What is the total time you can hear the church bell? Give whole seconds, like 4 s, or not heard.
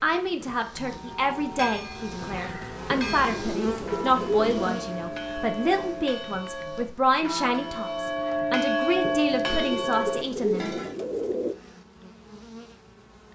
10 s.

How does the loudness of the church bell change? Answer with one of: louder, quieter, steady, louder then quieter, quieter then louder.
louder.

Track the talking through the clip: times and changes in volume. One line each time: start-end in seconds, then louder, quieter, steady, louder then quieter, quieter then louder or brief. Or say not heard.
0.0-10.8 steady.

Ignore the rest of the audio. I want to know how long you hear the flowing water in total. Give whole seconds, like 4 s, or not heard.
not heard.